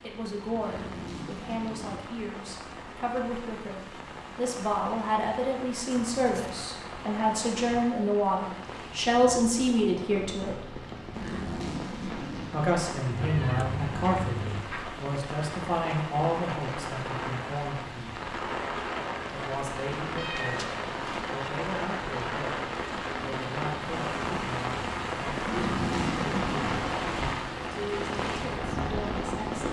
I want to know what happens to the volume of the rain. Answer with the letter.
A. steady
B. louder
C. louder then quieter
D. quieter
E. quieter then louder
B.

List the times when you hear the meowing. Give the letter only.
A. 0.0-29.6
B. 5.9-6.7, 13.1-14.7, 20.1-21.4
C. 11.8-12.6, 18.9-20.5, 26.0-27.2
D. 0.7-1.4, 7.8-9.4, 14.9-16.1
B.